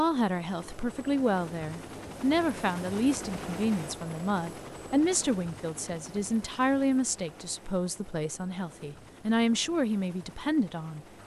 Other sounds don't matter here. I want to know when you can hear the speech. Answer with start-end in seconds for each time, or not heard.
0.0-11.1.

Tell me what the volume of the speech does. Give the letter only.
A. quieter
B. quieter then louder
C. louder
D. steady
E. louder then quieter
D.